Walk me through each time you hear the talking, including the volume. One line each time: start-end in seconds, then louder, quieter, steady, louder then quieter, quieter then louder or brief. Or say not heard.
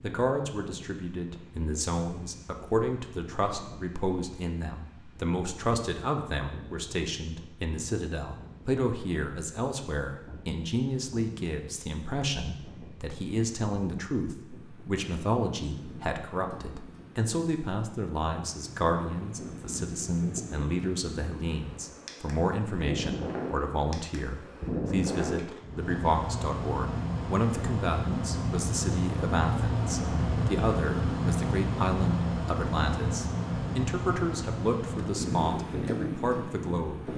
0.0-37.1 steady.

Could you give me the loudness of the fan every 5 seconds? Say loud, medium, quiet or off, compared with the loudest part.
quiet, quiet, quiet, quiet, medium, loud, loud, loud.